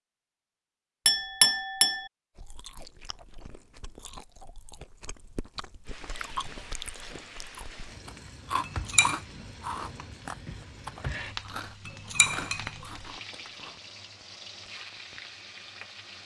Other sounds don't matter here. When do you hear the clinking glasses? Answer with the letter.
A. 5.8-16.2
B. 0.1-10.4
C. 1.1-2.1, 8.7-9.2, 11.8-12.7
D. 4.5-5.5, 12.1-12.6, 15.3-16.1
C.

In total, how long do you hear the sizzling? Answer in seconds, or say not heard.
10 s.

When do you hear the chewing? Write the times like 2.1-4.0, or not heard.
2.4-13.8.